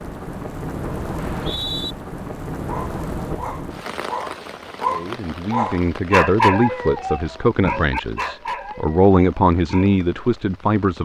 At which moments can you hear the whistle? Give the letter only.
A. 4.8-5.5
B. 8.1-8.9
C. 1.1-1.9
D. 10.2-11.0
C.